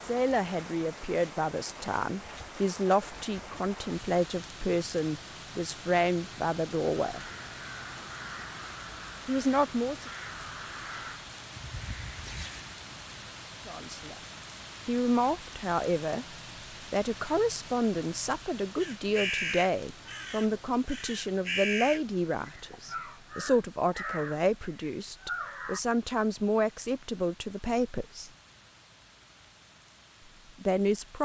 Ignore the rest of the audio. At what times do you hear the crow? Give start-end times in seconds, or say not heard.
7.0-12.8, 18.8-25.8.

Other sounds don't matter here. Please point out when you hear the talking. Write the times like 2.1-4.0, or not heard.
0.0-7.3, 9.2-10.1, 13.7-14.2, 14.8-16.2, 16.9-28.3, 30.6-31.1.